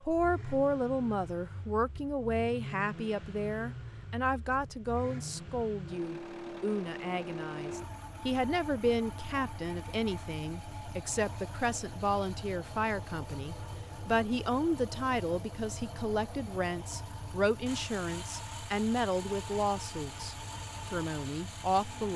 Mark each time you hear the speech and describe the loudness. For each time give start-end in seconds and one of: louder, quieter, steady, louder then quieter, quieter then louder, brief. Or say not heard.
0.0-22.1 steady.